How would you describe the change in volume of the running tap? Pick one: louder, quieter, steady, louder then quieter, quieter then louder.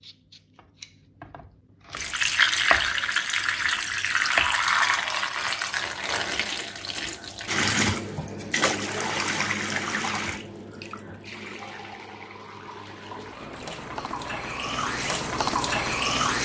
quieter then louder.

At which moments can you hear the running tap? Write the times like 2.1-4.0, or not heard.
1.9-16.3.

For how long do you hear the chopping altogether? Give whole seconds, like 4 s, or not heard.
5 s.